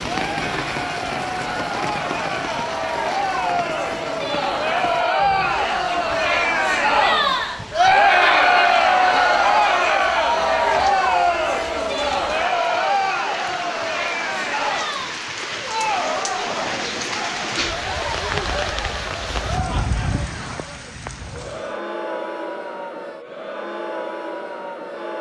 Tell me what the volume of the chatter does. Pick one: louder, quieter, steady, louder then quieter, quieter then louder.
louder then quieter.